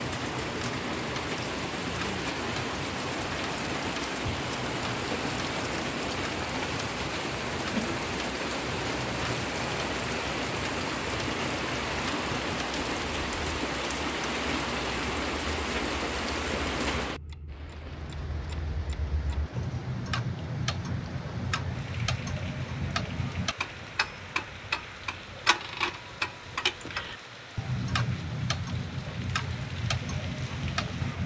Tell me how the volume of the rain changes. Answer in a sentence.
The volume of the rain goes down.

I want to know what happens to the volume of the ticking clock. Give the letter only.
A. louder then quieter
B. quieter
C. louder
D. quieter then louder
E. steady
C.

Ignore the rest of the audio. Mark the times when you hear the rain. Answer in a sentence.
You can hear the rain from 0.0 to 31.2 s.